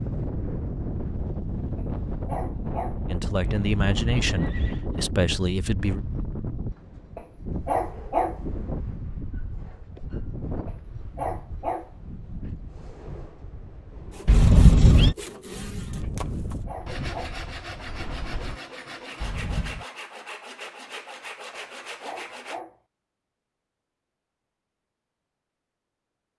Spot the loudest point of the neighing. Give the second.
15 s.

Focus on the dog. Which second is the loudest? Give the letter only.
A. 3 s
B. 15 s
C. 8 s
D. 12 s
C.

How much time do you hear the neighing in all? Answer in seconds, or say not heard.
3 s.